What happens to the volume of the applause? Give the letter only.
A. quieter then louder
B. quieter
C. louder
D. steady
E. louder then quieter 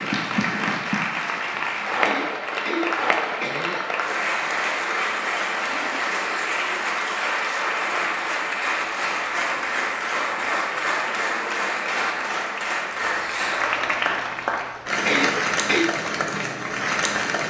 D.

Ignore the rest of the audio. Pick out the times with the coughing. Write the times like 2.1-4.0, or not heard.
2.0-3.9, 15.1-15.9.